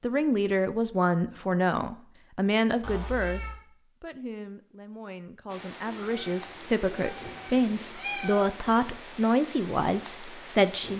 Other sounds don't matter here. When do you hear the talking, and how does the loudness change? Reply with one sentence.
You can hear the talking from 0.0 to 10.9 s, getting quieter then louder.